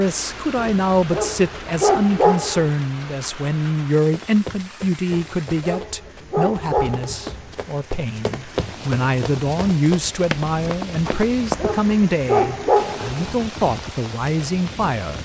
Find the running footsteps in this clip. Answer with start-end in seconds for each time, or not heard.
4.0-11.9.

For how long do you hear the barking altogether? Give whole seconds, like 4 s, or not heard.
7 s.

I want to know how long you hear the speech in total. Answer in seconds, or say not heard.
15 s.